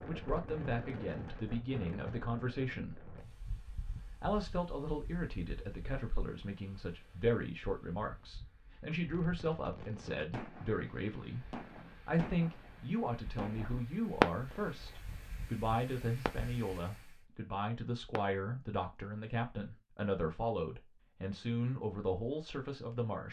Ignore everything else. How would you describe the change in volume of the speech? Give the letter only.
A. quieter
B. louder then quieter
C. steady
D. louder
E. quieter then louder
C.